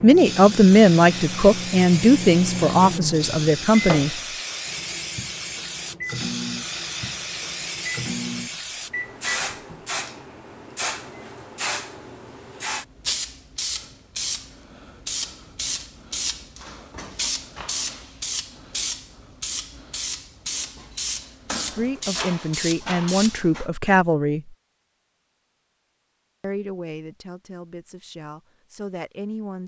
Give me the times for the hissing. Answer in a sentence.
The hissing can be heard from 0.1 to 23.7 s.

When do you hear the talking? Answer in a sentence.
You can hear the talking from 0.0 to 4.2 s, from 21.7 to 24.6 s and from 26.4 to 29.6 s.